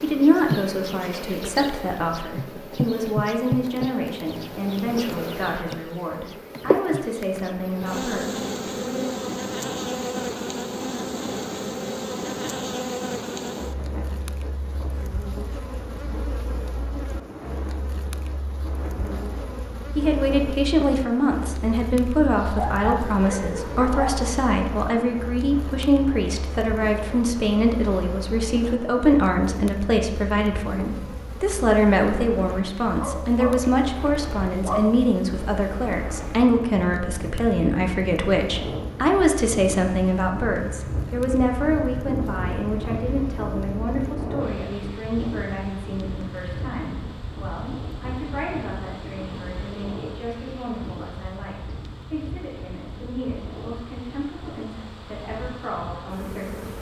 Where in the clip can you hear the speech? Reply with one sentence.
The speech can be heard from 0.0 to 9.3 s and from 19.9 to 56.7 s.